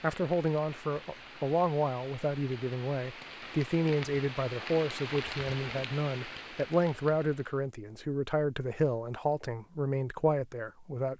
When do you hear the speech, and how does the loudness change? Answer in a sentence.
The speech can be heard from 0.0 to 11.1 s, at a steady volume.